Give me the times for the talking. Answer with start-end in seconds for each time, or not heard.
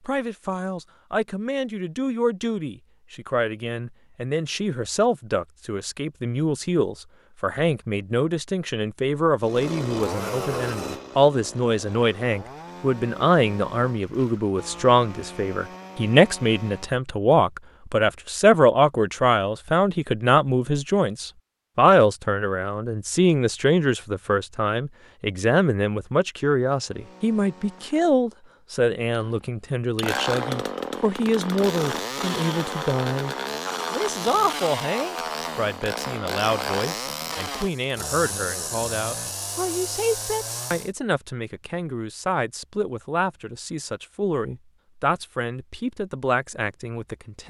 0.1-47.4.